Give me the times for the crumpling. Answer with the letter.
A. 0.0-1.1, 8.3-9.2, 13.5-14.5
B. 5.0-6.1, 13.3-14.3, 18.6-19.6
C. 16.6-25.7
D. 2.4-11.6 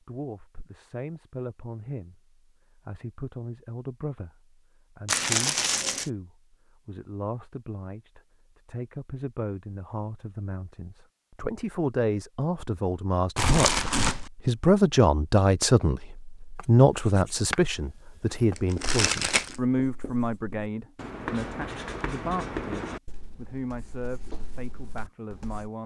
B.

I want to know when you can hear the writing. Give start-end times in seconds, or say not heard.
16.6-25.7.